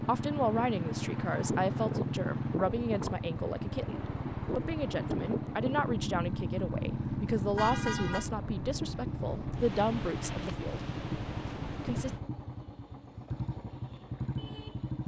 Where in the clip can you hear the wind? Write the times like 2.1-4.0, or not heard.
0.0-12.2.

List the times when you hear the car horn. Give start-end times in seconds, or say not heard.
7.5-8.3.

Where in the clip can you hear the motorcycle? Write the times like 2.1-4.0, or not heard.
0.0-15.0.